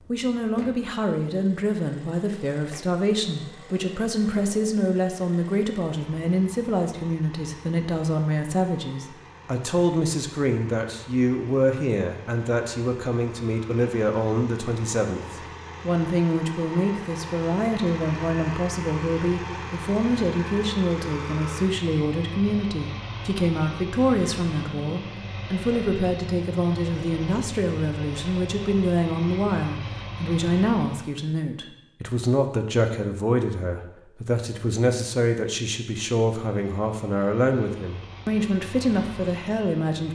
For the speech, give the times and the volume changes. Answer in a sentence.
The speech can be heard from 0.1 to 40.1 s, at a steady volume.